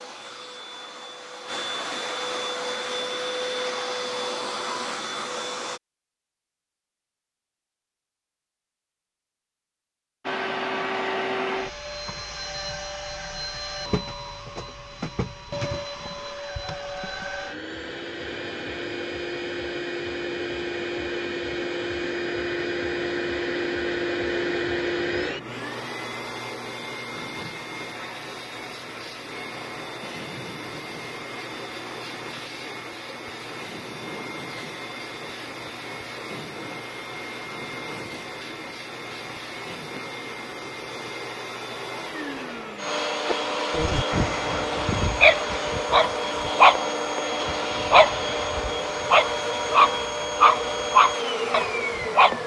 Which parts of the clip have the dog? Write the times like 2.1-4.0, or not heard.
43.2-52.4.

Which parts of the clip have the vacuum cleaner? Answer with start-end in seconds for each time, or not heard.
0.0-5.8, 10.2-52.4.